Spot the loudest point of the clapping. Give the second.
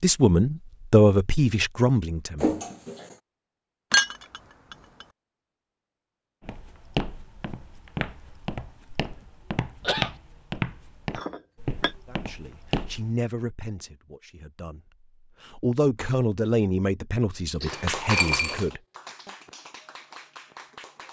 18 s.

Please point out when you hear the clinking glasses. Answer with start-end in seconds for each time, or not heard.
3.9-5.0, 11.2-11.9, 17.7-18.6.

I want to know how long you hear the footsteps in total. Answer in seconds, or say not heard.
7 s.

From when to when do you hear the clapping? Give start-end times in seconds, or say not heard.
17.6-21.0.